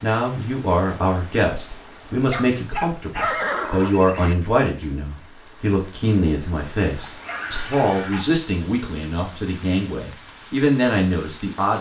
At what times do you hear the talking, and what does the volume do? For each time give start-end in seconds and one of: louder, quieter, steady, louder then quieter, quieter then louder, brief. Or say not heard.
0.0-11.7 steady.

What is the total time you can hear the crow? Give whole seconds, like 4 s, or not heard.
not heard.